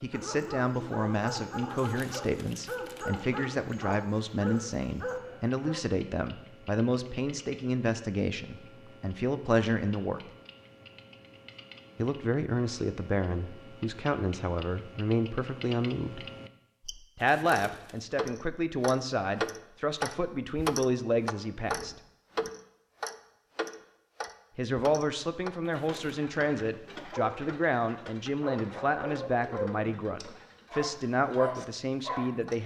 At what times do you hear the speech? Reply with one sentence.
You can hear the speech from 0.0 to 10.2 s, from 11.9 to 16.3 s, from 17.1 to 21.9 s and from 24.6 to 32.6 s.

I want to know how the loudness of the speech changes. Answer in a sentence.
The loudness of the speech stays about the same.